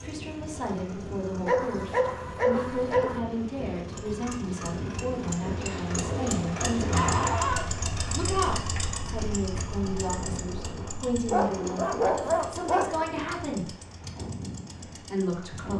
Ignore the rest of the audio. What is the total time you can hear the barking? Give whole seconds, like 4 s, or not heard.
5 s.